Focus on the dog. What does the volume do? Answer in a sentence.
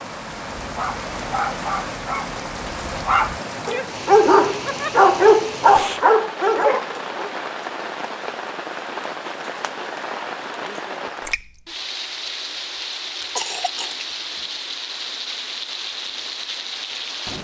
The loudness of the dog goes up.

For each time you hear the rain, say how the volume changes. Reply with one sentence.
You can hear the rain from 0.0 to 17.3 s, at a steady volume.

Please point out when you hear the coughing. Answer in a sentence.
You can hear the coughing from 13.2 to 14.4 s.